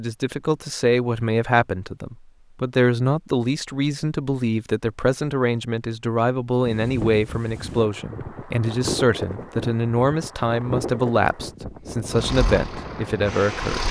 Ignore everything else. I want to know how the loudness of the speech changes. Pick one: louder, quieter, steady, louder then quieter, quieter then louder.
steady.